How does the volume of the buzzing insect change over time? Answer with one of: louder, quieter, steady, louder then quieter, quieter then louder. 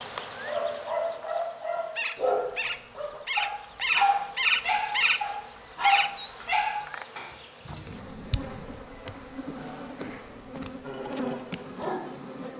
louder then quieter.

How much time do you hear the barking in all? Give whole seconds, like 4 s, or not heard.
9 s.